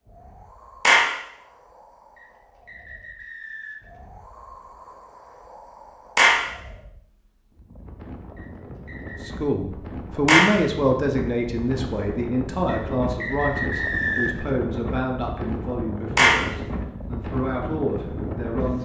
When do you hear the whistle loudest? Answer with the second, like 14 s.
14 s.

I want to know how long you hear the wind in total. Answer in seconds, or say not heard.
19 s.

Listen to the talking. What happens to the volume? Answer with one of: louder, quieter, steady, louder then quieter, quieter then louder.
quieter.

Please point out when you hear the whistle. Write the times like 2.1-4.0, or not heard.
2.1-3.9, 8.3-9.3, 12.7-14.5.